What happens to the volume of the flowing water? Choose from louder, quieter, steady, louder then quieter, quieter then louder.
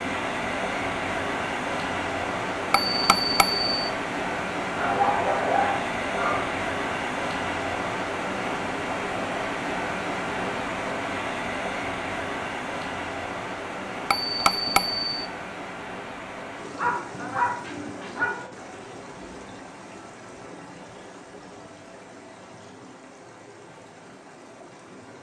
quieter.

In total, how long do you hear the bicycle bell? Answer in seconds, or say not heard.
2 s.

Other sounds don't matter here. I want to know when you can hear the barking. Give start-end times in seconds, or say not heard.
4.8-6.5, 16.8-18.4.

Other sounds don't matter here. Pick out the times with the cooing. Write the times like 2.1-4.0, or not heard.
not heard.